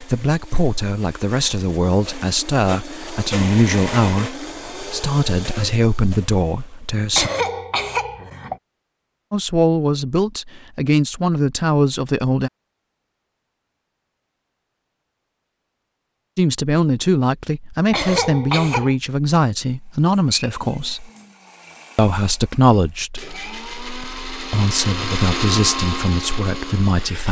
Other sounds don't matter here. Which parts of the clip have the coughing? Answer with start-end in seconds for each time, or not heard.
7.1-8.6, 17.9-18.9.